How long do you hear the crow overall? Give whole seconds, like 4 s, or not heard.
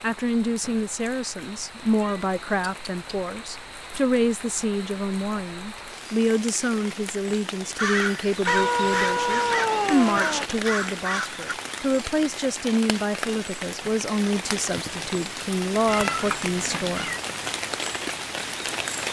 4 s.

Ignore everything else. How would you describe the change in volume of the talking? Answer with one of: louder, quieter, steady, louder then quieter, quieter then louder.
steady.